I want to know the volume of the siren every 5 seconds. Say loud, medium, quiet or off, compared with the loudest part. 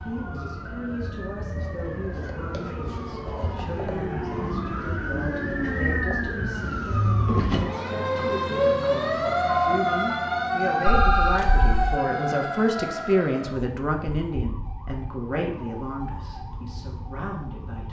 medium, loud, loud, quiet.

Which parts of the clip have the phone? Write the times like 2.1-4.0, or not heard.
10.8-11.9.